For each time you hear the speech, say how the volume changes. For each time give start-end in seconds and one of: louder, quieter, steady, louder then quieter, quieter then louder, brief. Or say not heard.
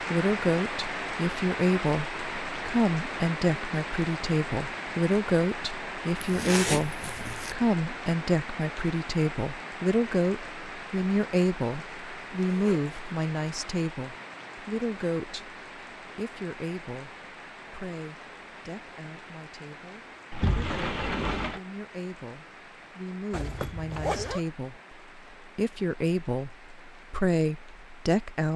0.0-28.5 quieter then louder.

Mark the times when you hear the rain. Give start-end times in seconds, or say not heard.
0.0-28.5.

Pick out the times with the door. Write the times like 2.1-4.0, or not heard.
20.3-21.6.